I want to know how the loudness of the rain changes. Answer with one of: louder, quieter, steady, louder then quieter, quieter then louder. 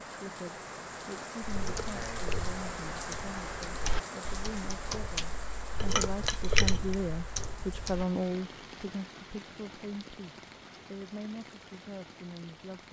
quieter.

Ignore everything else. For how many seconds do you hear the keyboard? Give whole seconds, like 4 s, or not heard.
7 s.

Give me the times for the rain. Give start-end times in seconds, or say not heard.
0.0-12.8.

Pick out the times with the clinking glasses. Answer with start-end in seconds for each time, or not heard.
5.8-7.0.